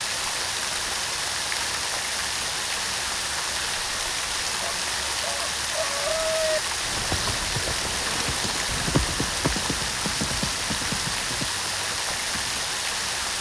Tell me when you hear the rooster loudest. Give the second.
6 s.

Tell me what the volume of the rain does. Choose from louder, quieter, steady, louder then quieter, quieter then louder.
steady.